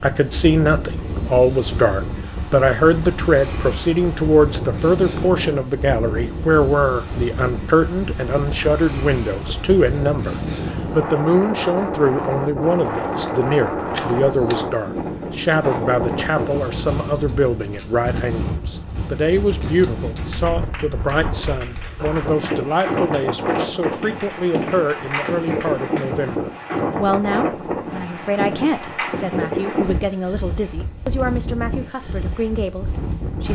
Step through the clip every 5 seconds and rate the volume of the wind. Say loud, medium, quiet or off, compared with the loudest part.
medium, medium, loud, loud, loud, loud, medium.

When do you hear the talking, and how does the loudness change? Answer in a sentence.
The talking can be heard from 0.0 to 33.5 s, getting quieter.